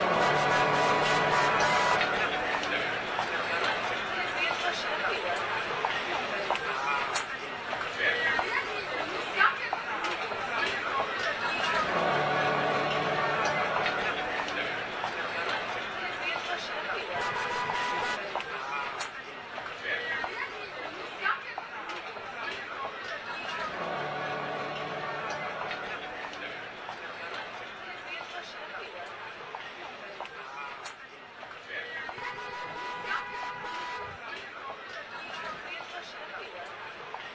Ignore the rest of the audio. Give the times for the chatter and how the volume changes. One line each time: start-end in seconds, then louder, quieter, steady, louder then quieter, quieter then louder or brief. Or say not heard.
0.0-37.3 quieter.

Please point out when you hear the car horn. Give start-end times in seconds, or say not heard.
0.1-2.0, 17.1-18.2, 32.1-34.2.